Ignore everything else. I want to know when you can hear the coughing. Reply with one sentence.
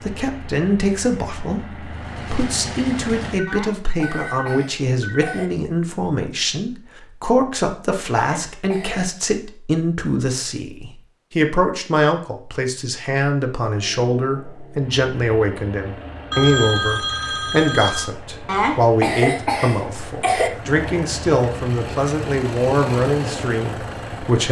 You can hear the coughing from 3.5 to 5.5 s, from 8.2 to 9.1 s and from 18.4 to 20.5 s.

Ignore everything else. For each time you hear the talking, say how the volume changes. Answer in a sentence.
The talking can be heard from 0.0 to 24.4 s, at a steady volume.